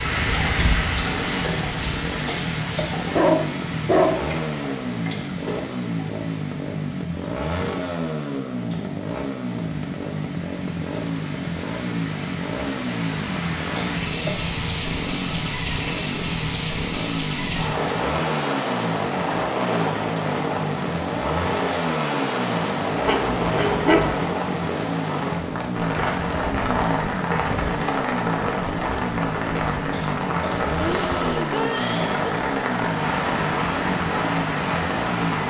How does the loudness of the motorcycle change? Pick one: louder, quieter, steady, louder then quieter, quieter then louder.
steady.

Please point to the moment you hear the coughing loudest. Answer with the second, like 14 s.
32 s.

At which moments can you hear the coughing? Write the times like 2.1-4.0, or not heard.
2.2-3.0, 13.8-14.5, 29.9-32.5.